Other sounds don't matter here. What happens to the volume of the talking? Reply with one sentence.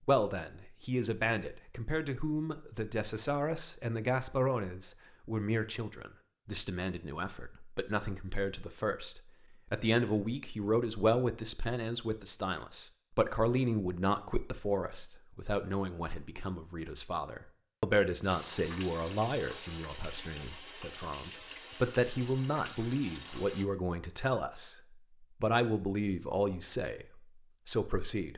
The volume of the talking stays about the same.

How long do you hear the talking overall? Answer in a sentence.
The talking can be heard for 28 seconds in total.